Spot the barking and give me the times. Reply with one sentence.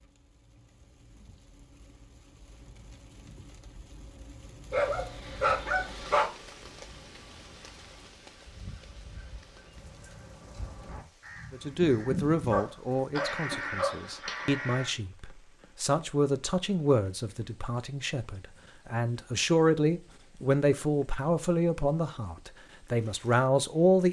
You can hear the barking from 4.7 to 6.3 s and from 12.5 to 14.0 s.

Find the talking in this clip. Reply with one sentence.
You can hear the talking from 11.5 to 24.0 s.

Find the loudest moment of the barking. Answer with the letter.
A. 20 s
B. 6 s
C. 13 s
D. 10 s
B.